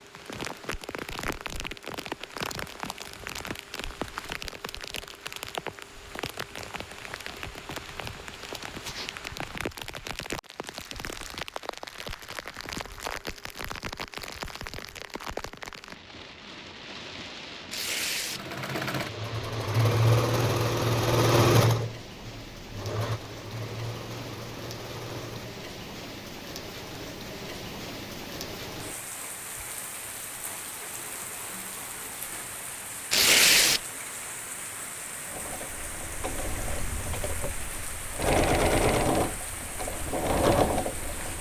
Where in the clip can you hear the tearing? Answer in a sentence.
The tearing can be heard from 17.7 to 18.4 s and from 33.1 to 33.8 s.